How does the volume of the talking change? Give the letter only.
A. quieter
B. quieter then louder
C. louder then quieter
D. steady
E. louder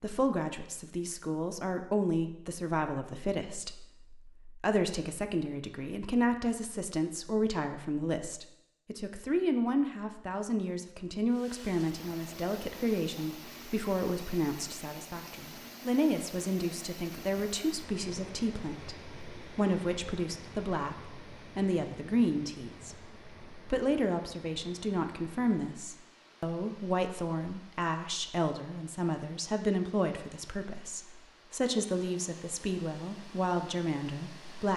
D.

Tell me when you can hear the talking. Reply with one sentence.
You can hear the talking from 0.0 to 34.7 s.